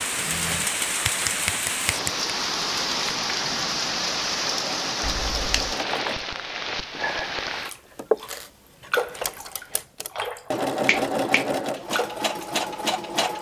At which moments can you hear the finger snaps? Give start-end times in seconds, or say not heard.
0.1-2.3, 5.0-5.8, 10.8-11.4.